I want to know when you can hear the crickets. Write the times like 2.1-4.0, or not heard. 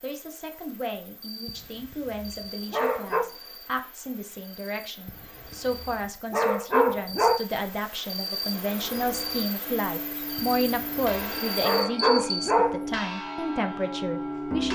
0.0-12.5.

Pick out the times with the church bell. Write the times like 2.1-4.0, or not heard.
8.7-14.6.